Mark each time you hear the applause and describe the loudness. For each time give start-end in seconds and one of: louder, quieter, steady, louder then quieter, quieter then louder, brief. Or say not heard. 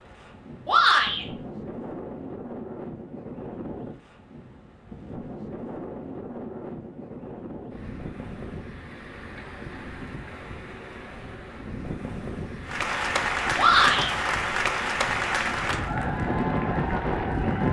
12.7-17.6 quieter.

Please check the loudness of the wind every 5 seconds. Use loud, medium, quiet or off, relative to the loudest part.
medium, medium, medium, loud.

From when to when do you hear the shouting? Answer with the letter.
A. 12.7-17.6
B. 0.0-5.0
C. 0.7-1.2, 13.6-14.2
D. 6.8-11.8
C.